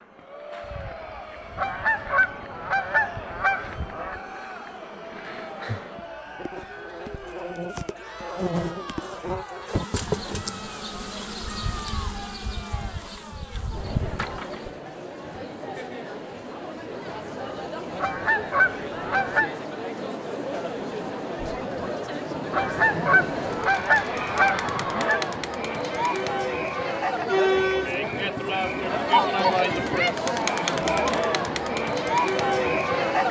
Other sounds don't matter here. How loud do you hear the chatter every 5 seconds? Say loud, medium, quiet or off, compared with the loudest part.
quiet, quiet, quiet, medium, medium, loud, loud.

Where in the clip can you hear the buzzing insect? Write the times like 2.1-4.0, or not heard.
0.0-14.8.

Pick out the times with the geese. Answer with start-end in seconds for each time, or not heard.
1.6-4.2, 18.0-19.5, 22.5-25.2.